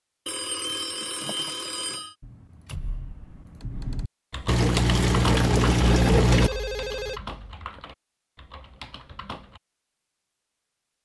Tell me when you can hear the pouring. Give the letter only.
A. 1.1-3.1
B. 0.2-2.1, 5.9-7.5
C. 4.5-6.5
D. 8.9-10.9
C.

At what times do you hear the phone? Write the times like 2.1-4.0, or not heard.
0.2-2.1, 5.9-7.5.